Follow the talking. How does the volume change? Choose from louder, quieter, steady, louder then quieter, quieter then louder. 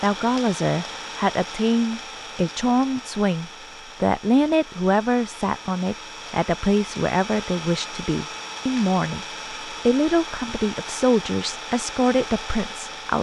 steady.